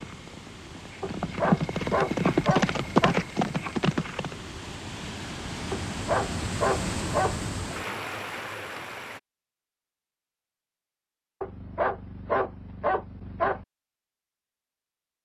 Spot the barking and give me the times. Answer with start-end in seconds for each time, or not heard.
1.0-3.1, 5.7-7.8, 11.4-13.7.